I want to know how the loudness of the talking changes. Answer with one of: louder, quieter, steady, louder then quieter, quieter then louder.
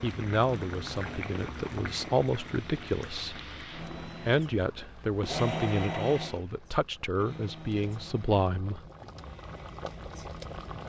steady.